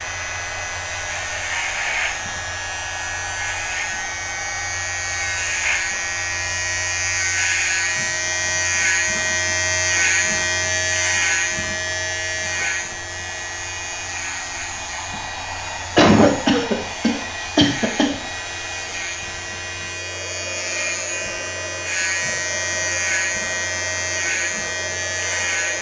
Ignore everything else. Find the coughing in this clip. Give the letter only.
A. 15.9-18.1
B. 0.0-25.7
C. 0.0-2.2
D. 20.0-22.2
A.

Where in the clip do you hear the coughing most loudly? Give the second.
16 s.